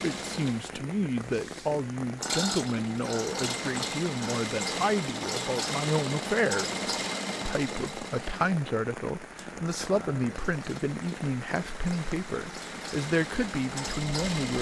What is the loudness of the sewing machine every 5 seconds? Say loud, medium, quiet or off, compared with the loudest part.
loud, loud, medium.